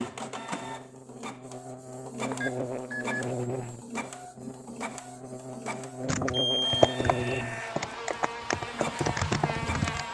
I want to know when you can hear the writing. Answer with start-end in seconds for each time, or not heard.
not heard.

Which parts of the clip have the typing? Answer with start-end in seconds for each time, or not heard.
6.0-10.0.